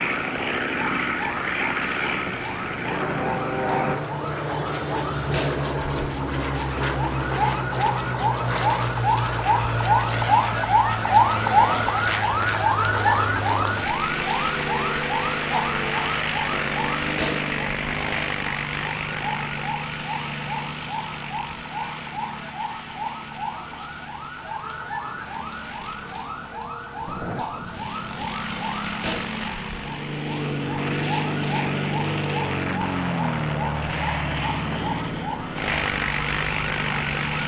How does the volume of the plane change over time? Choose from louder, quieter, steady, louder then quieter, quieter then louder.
quieter then louder.